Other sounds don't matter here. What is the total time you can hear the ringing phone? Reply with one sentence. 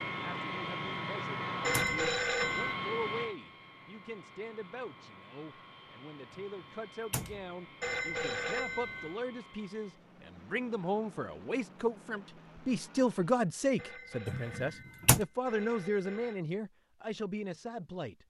The ringing phone can be heard for 5 seconds in total.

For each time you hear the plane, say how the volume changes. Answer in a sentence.
You can hear the plane from 0.0 to 13.3 s, getting quieter.